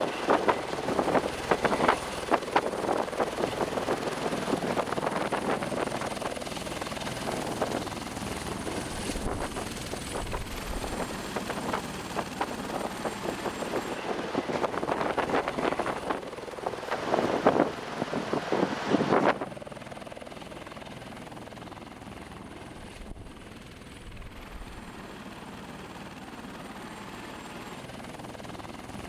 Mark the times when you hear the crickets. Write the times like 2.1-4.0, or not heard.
not heard.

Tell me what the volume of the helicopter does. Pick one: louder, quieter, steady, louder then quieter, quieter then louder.
quieter.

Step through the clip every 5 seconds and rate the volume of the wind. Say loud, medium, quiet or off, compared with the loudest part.
loud, medium, medium, loud, off, off.